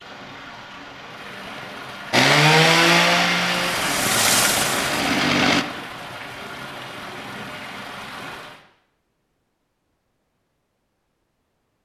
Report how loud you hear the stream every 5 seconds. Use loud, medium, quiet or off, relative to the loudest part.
loud, medium, off.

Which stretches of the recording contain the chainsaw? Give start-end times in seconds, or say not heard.
2.1-5.7.